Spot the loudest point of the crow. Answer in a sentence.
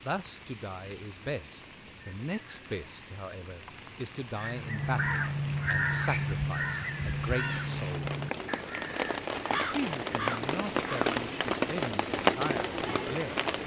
The volume of the crow peaks at 6 seconds.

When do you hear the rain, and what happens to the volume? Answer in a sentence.
You can hear the rain from 0.0 to 13.6 s, getting louder.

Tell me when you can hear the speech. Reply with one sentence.
You can hear the speech from 0.0 to 8.1 s and from 9.6 to 13.6 s.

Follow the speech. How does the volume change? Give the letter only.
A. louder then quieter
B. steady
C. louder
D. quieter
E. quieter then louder
B.